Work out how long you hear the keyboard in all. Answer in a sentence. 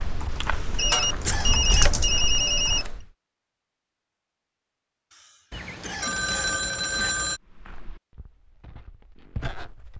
You can hear the keyboard for 3 seconds altogether.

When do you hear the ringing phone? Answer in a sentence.
The ringing phone can be heard from 0.8 to 2.9 s and from 5.5 to 7.4 s.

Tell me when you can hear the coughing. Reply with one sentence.
The coughing can be heard from 0.5 to 1.9 s and from 5.1 to 7.1 s.